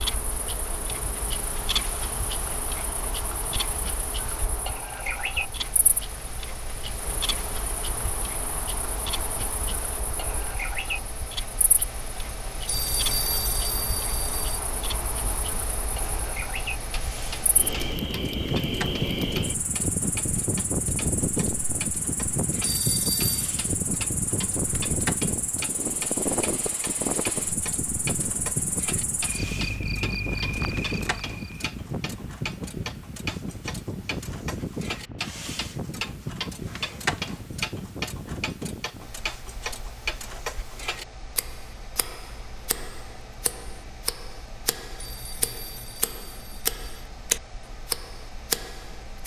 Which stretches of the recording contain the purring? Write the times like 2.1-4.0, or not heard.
not heard.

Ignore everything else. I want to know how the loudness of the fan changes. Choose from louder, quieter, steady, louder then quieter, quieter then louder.
louder then quieter.